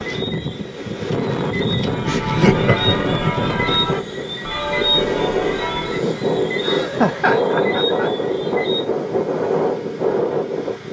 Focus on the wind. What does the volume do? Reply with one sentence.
The volume of the wind stays about the same.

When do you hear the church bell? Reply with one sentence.
The church bell can be heard from 1.8 to 6.1 s.